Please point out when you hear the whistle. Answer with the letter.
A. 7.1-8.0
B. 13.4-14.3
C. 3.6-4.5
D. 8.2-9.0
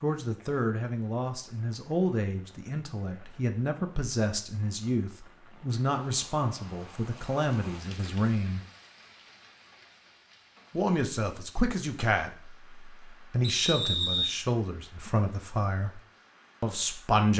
B.